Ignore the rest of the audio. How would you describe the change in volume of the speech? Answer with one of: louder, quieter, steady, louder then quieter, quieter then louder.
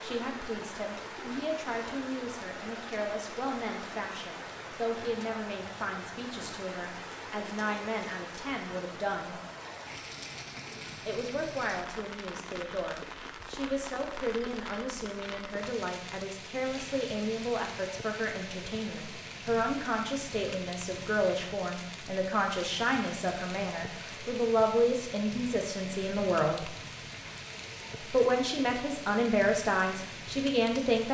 louder.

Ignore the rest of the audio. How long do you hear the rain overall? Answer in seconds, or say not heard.
31 s.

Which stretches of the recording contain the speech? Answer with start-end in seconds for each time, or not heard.
0.0-9.3, 11.1-26.7, 28.0-31.0.